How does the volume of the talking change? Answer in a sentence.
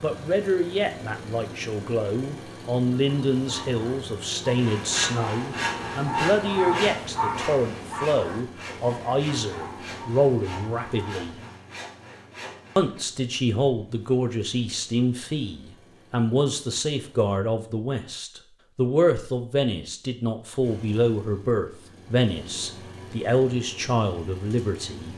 The volume of the talking stays about the same.